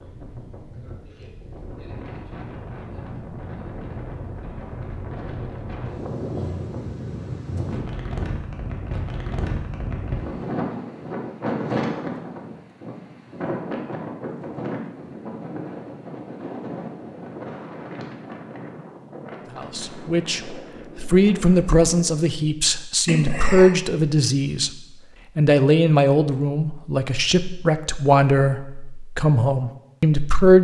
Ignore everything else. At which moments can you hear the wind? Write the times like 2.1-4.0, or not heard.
0.0-22.2.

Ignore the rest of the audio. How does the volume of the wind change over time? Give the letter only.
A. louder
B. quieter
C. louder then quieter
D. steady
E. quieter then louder
C.